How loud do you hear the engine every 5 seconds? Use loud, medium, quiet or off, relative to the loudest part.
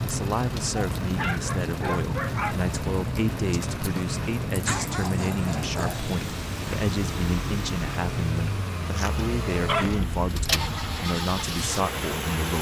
medium, loud, loud.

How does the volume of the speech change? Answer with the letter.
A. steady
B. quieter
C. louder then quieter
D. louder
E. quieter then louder
A.